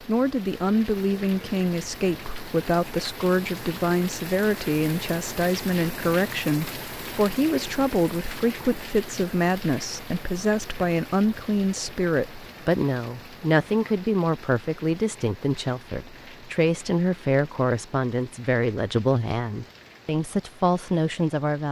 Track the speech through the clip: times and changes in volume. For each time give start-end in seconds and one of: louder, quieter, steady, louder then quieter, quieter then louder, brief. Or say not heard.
0.0-21.6 steady.